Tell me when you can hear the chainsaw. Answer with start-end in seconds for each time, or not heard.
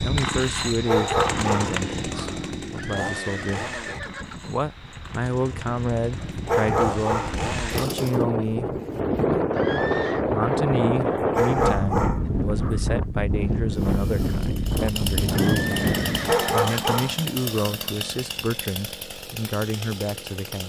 0.0-8.2, 13.8-20.6.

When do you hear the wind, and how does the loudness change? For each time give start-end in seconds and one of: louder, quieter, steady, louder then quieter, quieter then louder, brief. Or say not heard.
0.0-16.4 louder.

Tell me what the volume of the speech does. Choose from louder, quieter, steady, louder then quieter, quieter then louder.
steady.